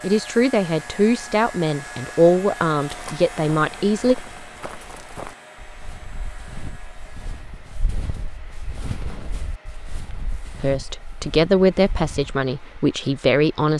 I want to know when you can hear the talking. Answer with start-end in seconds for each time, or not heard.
0.0-4.2, 10.6-13.7.